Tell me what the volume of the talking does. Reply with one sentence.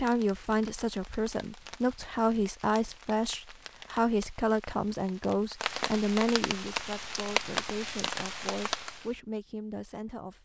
The loudness of the talking goes down.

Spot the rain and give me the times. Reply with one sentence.
The rain can be heard from 0.0 to 9.1 s.